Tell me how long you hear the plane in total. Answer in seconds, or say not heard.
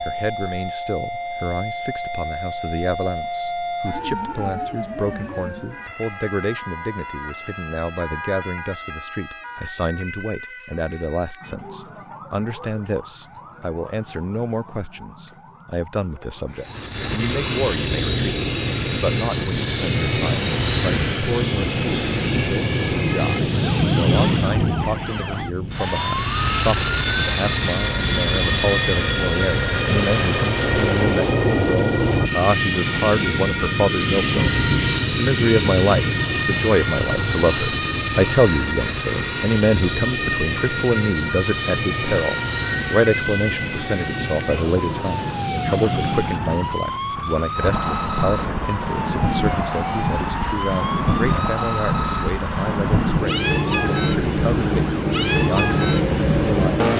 40 s.